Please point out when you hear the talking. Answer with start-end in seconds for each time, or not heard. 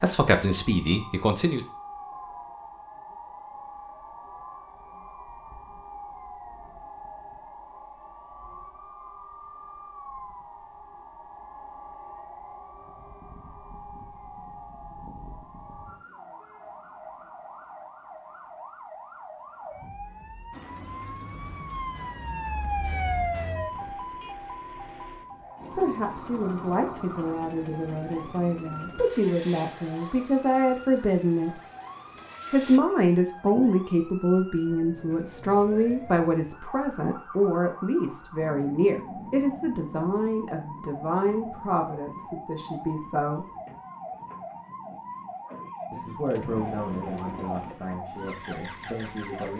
0.0-1.6, 25.8-31.6, 32.5-43.5, 45.9-49.5.